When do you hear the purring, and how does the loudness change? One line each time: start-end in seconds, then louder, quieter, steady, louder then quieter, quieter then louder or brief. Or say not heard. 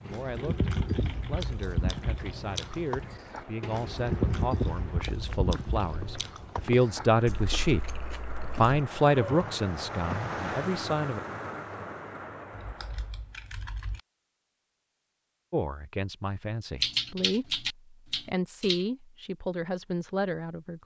not heard.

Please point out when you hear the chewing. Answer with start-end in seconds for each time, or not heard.
0.1-8.7.